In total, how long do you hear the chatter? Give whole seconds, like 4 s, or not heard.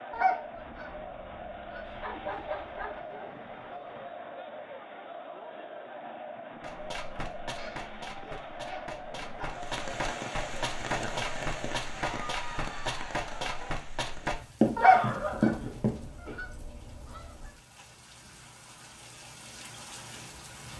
14 s.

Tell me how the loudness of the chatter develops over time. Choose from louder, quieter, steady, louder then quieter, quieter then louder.
steady.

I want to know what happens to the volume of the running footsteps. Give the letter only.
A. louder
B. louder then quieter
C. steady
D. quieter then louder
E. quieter
A.